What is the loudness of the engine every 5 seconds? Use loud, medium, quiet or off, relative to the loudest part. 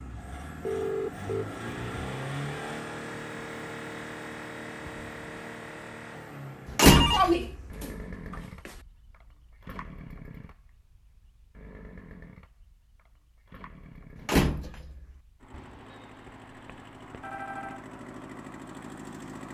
loud, medium, quiet, medium.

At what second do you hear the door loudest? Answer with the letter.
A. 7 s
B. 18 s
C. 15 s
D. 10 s
A.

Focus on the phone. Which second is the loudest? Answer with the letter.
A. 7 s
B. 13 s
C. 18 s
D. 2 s
A.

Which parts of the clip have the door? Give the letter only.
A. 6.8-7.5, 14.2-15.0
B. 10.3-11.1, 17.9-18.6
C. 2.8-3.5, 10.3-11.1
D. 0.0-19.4
A.